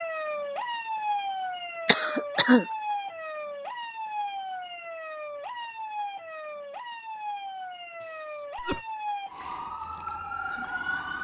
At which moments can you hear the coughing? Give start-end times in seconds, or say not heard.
1.9-2.6, 8.0-8.8.